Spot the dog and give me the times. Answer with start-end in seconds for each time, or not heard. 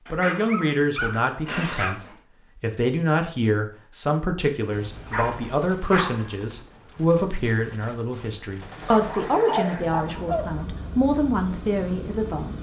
0.1-2.1, 5.1-6.3, 8.9-10.9.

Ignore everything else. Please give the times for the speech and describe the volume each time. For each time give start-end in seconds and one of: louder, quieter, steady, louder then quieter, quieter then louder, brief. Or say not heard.
0.1-12.5 steady.